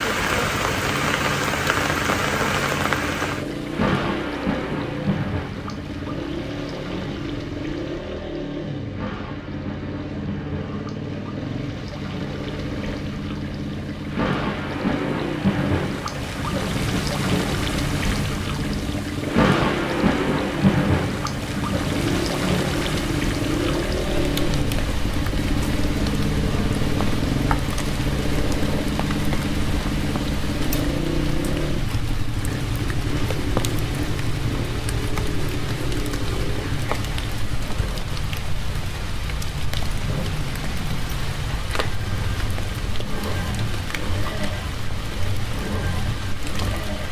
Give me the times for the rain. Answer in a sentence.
You can hear the rain from 0.0 to 47.0 s.